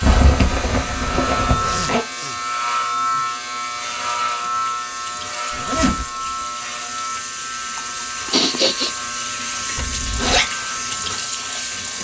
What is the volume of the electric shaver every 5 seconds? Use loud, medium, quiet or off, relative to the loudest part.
loud, medium, medium.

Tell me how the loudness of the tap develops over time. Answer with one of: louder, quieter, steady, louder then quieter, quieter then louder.
louder.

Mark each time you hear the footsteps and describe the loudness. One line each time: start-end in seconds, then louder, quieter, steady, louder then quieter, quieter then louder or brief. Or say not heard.
not heard.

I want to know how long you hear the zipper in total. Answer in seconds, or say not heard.
3 s.